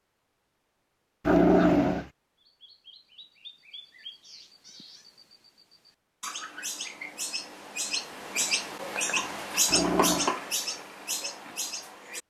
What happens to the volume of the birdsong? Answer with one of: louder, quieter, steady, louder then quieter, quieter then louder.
louder.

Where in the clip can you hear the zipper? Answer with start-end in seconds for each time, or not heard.
not heard.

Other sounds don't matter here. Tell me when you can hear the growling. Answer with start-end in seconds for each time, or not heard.
1.2-2.0, 9.7-10.3.